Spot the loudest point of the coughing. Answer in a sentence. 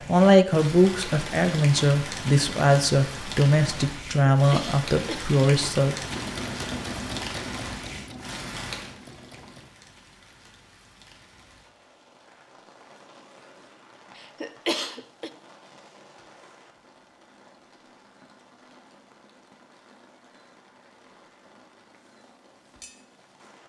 The loudest moment of the coughing is at 15 seconds.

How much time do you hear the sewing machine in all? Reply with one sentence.
The sewing machine can be heard for 4 seconds in total.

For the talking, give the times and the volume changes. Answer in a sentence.
The talking can be heard from 0.1 to 6.0 s, at a steady volume.